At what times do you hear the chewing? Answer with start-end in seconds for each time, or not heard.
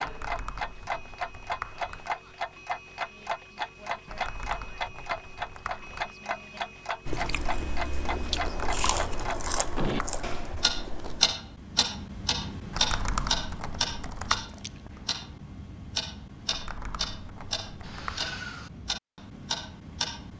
7.0-11.3.